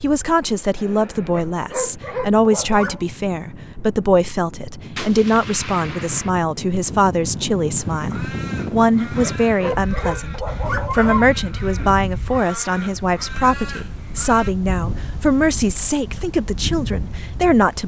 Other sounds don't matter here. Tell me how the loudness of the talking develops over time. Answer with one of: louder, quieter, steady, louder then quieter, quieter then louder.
steady.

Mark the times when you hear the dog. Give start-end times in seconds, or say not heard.
1.3-3.0, 9.2-11.2.